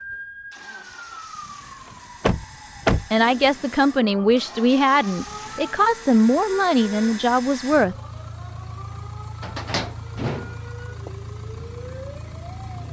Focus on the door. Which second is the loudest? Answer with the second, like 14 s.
3 s.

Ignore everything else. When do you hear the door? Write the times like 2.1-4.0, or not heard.
2.2-3.1, 9.4-11.1.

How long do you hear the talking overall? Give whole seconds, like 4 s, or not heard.
5 s.